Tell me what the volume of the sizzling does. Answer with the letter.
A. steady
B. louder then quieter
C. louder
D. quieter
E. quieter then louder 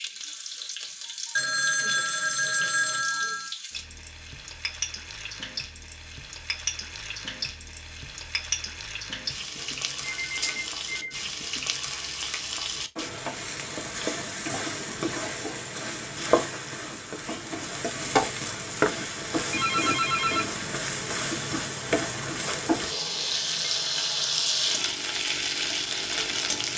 C.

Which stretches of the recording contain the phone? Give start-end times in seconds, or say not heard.
1.4-3.5, 9.6-11.2, 19.4-20.6.